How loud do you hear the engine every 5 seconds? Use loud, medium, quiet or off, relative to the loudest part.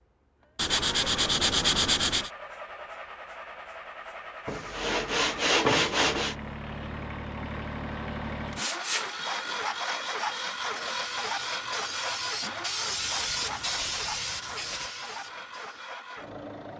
medium, loud, loud, medium.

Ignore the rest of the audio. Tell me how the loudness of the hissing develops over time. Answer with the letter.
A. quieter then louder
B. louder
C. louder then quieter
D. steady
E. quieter
C.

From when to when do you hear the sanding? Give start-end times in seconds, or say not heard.
0.6-2.3, 4.5-6.3, 8.6-9.6, 12.8-14.9.